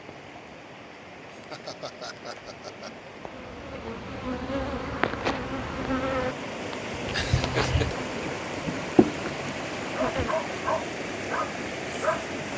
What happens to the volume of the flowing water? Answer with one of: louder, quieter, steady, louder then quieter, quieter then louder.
louder.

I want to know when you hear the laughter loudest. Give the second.
8 s.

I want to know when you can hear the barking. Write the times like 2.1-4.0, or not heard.
9.9-12.2.